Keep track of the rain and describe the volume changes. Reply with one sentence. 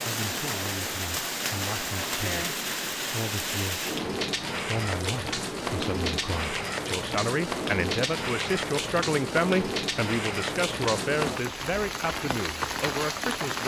The volume of the rain stays about the same.